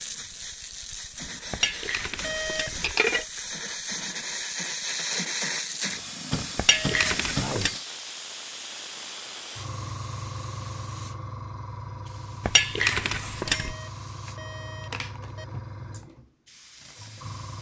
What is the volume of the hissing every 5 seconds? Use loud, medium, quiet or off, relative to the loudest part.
loud, loud, medium, medium.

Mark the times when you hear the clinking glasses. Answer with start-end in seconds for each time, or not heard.
1.5-3.2, 6.5-7.8, 12.4-13.8.